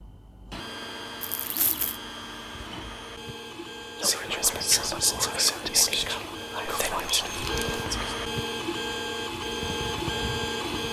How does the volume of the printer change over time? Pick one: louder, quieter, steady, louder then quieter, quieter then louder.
louder.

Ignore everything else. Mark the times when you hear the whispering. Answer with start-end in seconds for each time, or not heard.
4.0-8.2.